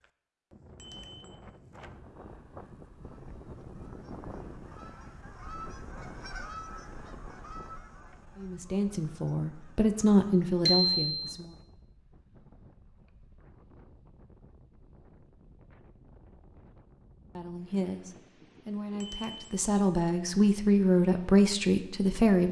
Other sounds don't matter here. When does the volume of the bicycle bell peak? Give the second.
11 s.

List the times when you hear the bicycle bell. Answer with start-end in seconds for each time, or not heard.
0.8-1.4, 10.7-11.3, 19.0-19.6.